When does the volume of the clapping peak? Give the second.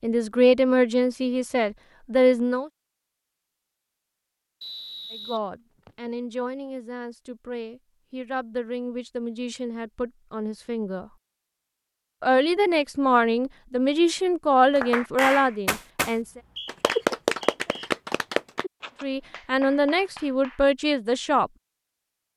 17 s.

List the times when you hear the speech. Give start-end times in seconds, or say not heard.
0.0-2.7, 5.1-11.1, 12.2-16.4, 19.0-21.5.